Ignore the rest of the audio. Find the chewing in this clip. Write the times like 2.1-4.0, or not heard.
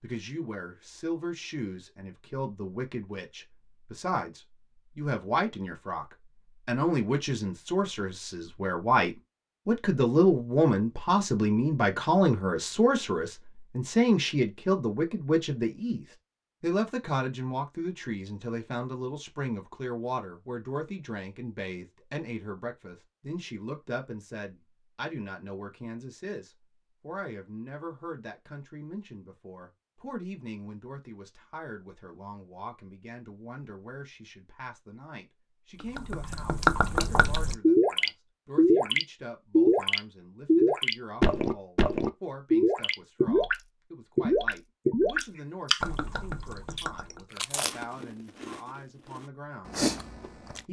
45.1-45.9, 46.7-50.6.